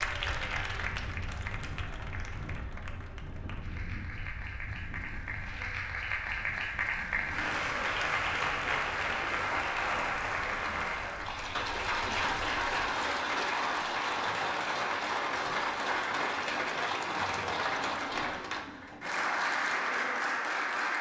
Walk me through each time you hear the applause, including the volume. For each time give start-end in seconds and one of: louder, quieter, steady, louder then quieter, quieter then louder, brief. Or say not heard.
0.0-20.9 louder.